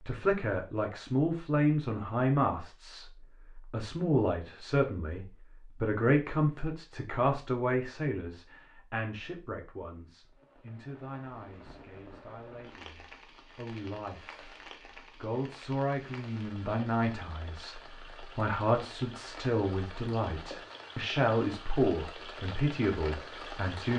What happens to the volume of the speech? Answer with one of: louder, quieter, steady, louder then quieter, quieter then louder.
quieter then louder.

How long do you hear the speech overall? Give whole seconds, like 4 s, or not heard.
23 s.